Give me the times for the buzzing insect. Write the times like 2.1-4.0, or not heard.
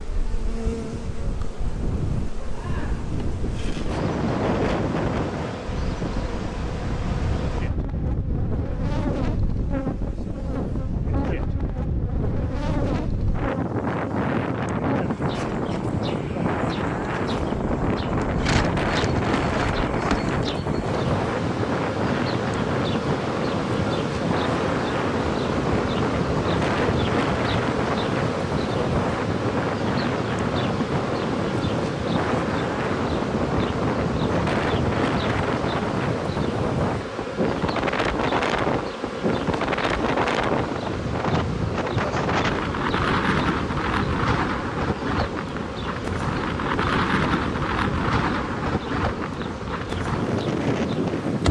0.0-51.4.